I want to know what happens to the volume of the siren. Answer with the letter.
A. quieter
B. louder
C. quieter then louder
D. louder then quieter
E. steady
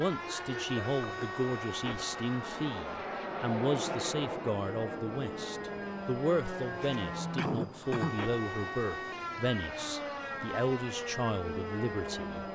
C.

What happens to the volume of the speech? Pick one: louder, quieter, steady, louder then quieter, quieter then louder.
steady.